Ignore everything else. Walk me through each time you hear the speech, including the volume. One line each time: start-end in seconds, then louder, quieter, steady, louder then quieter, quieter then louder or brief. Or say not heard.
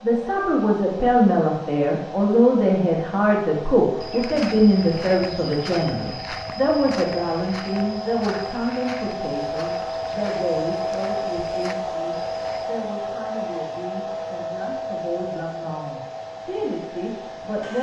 0.0-17.7 quieter.